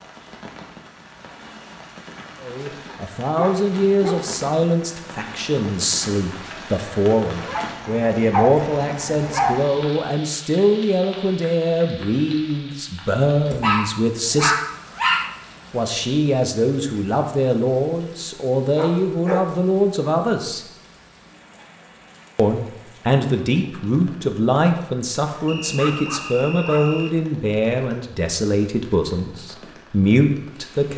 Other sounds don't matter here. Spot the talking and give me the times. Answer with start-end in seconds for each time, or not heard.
2.4-14.6, 15.7-20.6, 22.4-30.9.